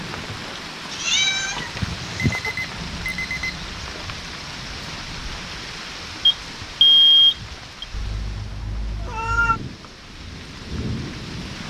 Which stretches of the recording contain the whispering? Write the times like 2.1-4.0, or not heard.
not heard.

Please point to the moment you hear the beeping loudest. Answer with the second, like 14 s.
7 s.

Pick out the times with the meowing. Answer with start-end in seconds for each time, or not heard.
0.9-2.5, 7.9-9.6.